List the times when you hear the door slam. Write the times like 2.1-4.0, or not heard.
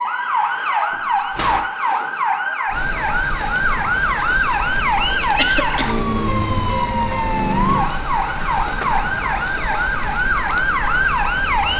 0.9-1.7, 8.3-9.0.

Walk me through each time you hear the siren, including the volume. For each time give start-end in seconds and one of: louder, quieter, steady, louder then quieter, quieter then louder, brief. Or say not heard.
0.0-11.7 steady.